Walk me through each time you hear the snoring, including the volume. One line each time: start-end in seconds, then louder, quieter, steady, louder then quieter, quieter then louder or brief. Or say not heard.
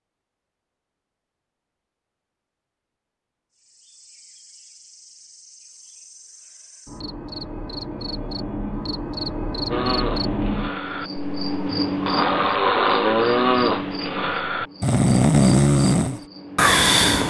9.7-17.2 louder.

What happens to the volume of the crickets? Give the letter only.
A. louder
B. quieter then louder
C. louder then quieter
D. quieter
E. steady
C.